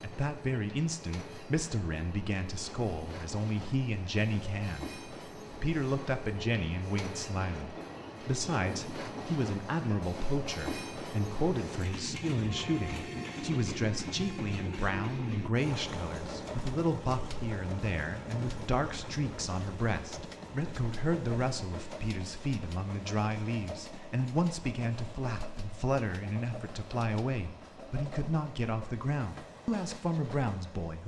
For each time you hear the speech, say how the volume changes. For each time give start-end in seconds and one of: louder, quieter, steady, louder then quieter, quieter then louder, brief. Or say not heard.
0.0-31.0 steady.